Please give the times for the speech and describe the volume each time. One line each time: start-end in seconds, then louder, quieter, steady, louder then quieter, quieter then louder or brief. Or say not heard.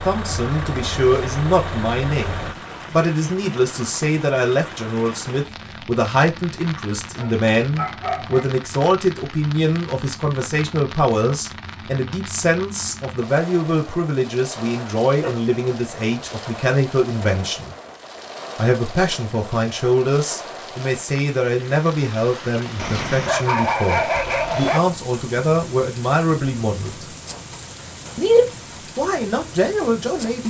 0.0-17.8 steady
18.6-27.1 steady
28.1-30.4 brief.